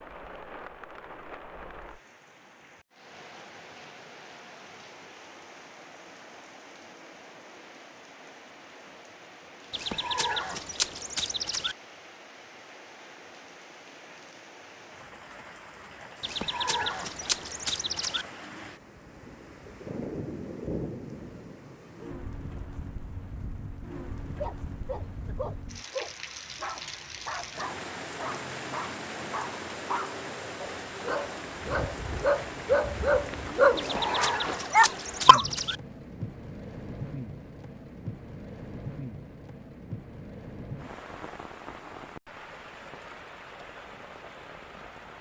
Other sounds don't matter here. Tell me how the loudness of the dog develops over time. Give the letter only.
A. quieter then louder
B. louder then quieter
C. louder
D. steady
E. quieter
C.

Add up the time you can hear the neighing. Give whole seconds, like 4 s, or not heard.
6 s.